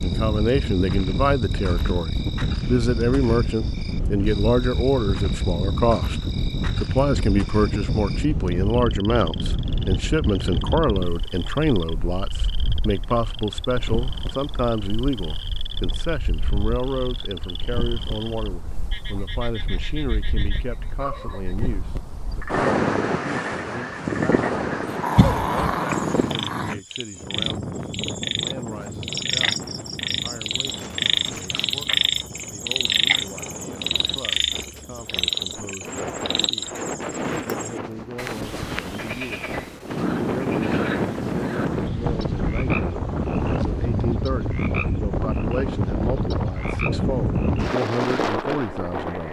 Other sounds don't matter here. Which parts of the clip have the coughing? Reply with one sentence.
The coughing can be heard from 25.1 to 25.8 s.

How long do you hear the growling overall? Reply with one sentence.
You can hear the growling for 2 seconds altogether.